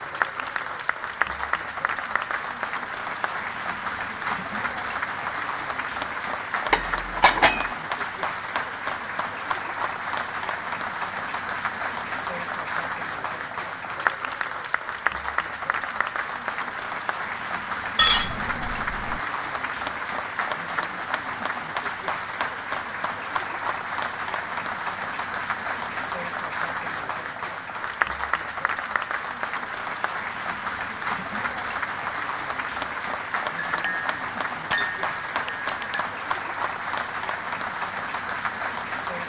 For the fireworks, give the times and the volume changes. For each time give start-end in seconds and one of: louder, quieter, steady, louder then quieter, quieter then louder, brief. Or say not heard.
not heard.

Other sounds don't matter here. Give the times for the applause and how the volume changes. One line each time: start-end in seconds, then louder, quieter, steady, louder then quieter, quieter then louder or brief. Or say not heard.
0.0-39.2 steady.